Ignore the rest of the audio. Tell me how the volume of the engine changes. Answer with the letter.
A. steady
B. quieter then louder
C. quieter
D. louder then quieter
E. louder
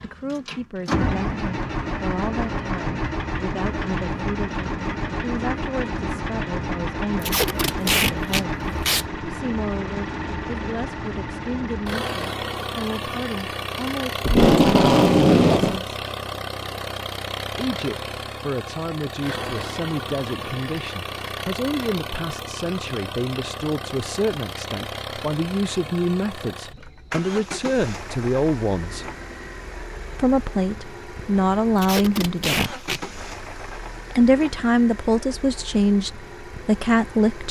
C.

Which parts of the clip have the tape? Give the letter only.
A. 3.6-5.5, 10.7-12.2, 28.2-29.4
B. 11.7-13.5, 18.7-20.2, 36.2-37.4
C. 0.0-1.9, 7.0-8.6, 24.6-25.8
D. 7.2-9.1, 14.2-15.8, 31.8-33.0
D.